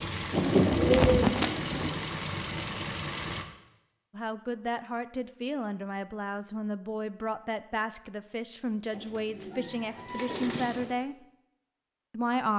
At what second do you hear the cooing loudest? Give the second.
1 s.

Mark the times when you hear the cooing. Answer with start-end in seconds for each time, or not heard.
0.3-2.0, 8.9-10.9.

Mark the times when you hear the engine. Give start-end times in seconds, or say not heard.
0.0-3.5.